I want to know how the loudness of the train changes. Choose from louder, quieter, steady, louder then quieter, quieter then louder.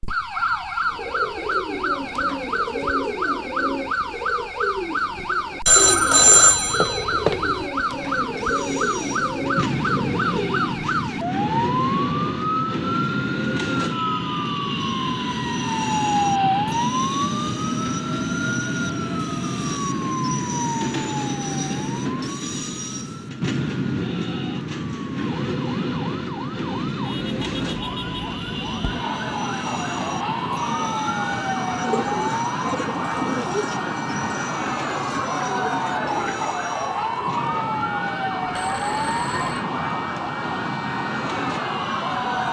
quieter.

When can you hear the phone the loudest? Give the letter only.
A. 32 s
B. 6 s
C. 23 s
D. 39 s
B.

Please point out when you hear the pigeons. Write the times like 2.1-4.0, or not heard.
0.8-10.6, 31.7-36.6.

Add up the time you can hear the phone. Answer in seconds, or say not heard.
3 s.